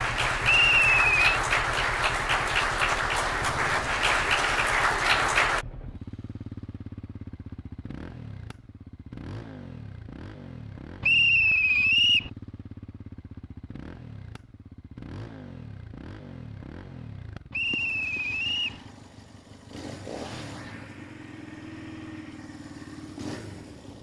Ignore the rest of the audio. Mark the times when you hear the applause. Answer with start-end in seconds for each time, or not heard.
0.0-5.7.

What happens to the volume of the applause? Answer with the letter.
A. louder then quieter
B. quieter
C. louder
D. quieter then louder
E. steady
E.